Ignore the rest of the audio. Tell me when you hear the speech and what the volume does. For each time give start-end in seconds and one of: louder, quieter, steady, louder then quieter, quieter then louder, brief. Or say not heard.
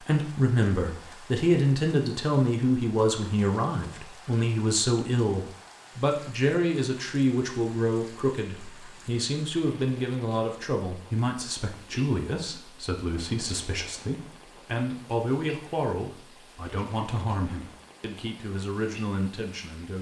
0.0-19.9 quieter.